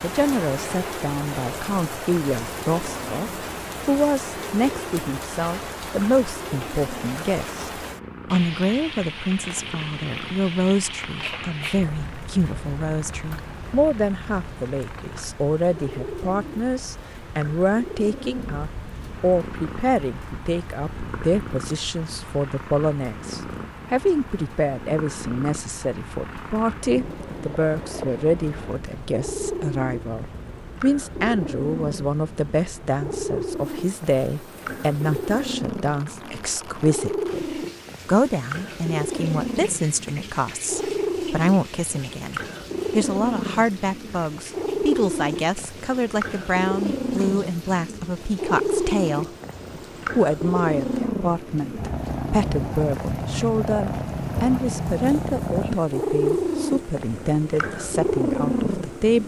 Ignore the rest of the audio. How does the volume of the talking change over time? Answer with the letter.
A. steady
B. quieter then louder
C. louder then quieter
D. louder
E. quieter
A.